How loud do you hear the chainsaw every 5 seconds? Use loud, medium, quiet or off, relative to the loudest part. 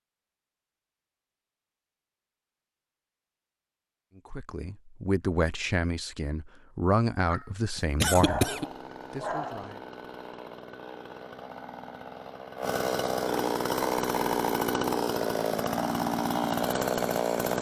off, quiet, loud, loud.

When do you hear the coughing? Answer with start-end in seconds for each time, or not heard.
7.3-8.7.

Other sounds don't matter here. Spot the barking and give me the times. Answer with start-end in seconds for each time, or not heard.
8.2-9.8.